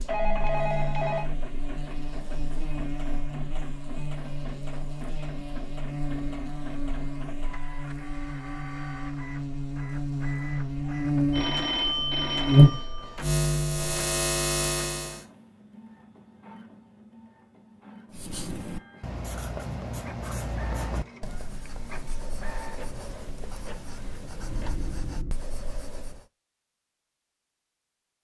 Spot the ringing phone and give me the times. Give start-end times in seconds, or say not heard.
0.1-1.3, 11.3-13.2, 24.4-25.4.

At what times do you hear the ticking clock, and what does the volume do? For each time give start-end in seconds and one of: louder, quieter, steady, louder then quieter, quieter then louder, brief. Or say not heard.
not heard.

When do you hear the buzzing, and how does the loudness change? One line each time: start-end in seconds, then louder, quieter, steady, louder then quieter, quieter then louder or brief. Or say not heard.
0.0-15.2 louder.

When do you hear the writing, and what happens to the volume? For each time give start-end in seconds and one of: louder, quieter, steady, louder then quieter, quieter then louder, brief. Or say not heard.
18.1-26.2 quieter.